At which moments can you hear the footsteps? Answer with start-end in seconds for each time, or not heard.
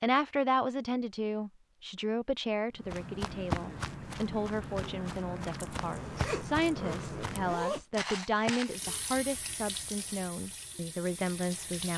2.8-8.8.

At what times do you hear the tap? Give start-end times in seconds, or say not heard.
8.7-11.9.